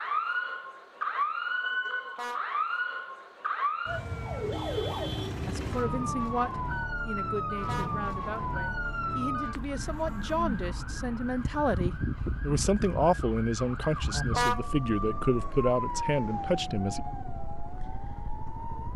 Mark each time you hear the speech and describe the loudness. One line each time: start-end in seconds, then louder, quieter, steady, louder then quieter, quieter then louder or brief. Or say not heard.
5.5-17.0 louder.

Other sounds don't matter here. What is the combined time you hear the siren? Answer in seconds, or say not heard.
19 s.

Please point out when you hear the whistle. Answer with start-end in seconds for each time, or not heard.
not heard.